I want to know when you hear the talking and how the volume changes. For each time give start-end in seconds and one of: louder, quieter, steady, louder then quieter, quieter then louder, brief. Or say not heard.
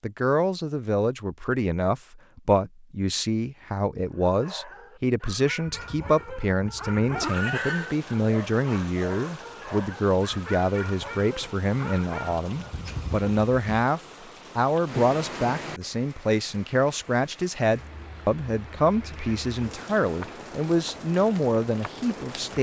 0.0-22.5 steady.